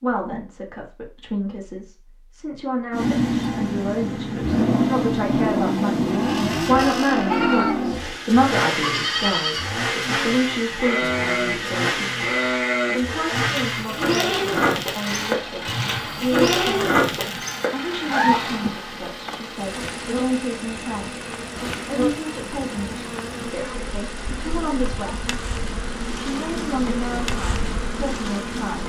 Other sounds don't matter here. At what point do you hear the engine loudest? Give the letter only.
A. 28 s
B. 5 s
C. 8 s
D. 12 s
B.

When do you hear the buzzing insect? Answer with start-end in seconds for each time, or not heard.
17.2-28.8.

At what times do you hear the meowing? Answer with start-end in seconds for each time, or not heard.
not heard.